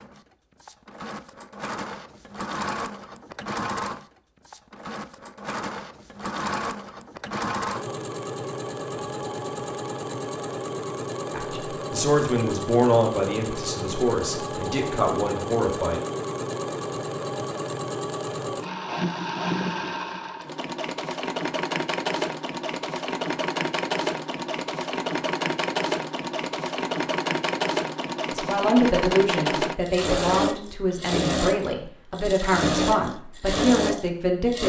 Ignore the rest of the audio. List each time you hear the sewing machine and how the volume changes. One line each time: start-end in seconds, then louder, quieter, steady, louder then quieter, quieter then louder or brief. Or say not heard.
0.0-34.6 louder.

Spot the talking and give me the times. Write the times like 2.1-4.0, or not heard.
11.3-16.0, 28.3-34.6.